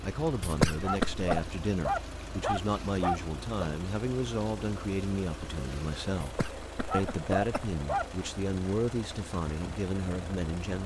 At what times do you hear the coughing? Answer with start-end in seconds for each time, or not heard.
0.4-1.5, 6.2-7.7.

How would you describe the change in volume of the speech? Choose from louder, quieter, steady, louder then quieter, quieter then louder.
steady.